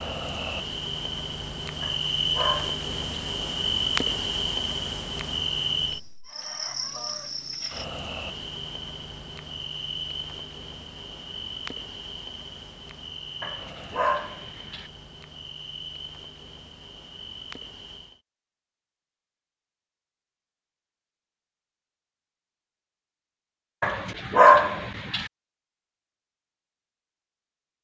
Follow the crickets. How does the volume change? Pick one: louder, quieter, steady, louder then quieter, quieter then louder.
quieter.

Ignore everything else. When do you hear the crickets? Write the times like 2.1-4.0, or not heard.
0.0-18.2.